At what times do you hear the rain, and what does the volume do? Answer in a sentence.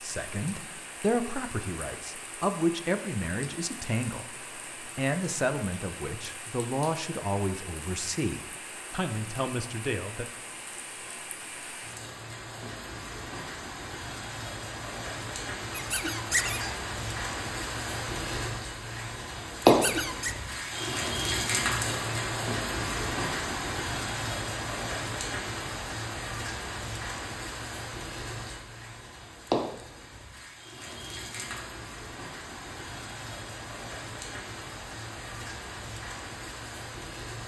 You can hear the rain from 0.0 to 37.4 s, getting louder then quieter.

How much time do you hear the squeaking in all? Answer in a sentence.
The squeaking can be heard for 2 seconds in total.